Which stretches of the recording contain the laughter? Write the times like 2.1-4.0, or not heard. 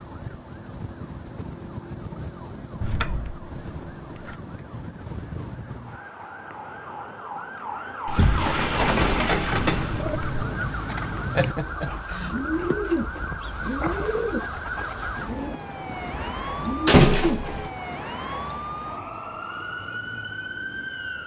11.3-12.3.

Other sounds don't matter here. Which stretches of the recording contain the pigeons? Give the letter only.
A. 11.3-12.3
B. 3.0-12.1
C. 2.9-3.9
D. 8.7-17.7
D.